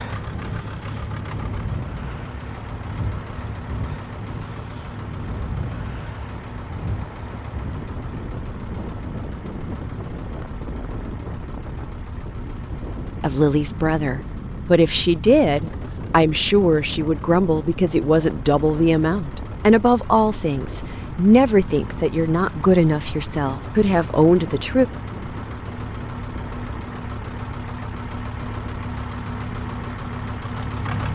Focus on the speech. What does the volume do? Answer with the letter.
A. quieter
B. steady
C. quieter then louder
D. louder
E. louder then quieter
B.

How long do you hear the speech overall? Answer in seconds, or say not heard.
12 s.